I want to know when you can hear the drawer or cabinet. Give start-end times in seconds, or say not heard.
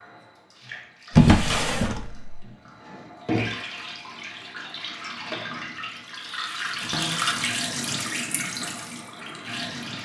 1.1-2.5, 6.8-7.5.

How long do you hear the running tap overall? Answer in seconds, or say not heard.
10 s.